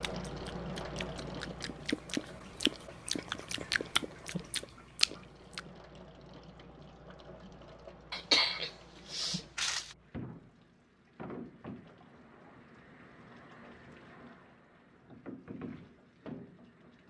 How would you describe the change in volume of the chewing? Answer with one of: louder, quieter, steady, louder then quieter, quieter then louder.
louder.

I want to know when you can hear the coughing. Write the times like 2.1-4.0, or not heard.
8.1-9.9.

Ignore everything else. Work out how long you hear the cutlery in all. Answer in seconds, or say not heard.
not heard.